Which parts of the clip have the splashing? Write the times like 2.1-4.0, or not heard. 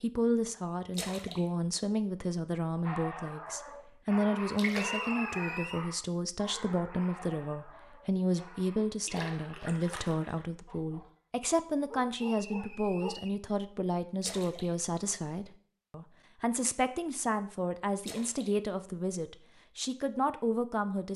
0.9-1.4, 4.5-5.1, 9.1-10.4, 14.2-14.7, 18.0-18.5.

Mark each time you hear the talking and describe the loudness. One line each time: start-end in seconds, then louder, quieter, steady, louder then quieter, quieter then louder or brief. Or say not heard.
0.0-21.1 steady.